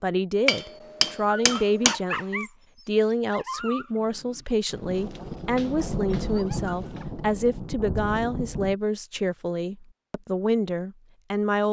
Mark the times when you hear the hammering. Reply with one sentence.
You can hear the hammering from 0.5 to 2.0 s.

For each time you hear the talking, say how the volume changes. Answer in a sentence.
You can hear the talking from 0.0 to 11.6 s, at a steady volume.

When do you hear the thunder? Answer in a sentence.
The thunder can be heard from 4.7 to 8.8 s.